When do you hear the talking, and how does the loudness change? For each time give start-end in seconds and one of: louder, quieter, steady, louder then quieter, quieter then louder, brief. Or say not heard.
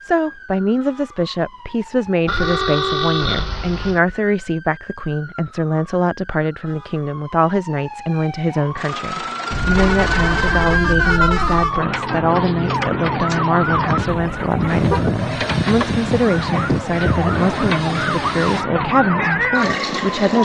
0.0-20.4 steady.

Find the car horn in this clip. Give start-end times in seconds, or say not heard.
2.2-4.0, 9.5-11.8, 14.1-15.1.